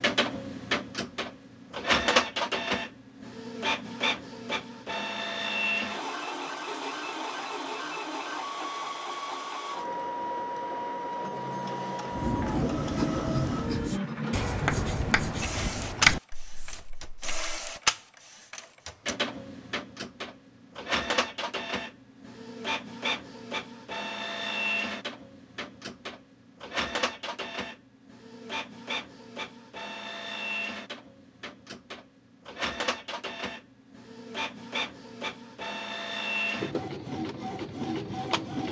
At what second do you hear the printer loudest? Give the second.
2 s.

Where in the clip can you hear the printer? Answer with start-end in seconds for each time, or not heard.
0.0-38.6.